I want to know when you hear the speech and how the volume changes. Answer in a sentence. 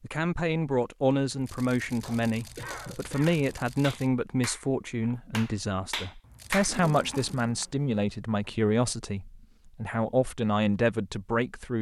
The speech can be heard from 0.0 to 11.7 s, at a steady volume.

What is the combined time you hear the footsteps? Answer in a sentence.
You can't hear the footsteps here.